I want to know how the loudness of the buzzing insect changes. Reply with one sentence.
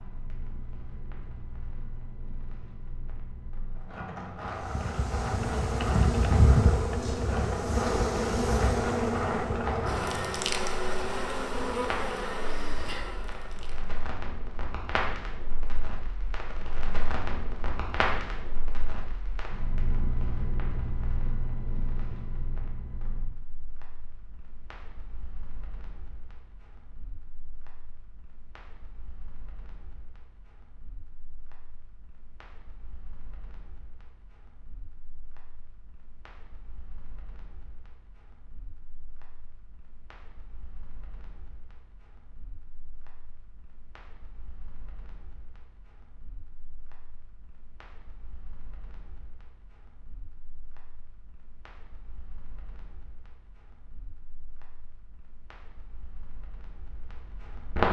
The volume of the buzzing insect goes down.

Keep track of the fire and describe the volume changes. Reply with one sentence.
The volume of the fire goes down.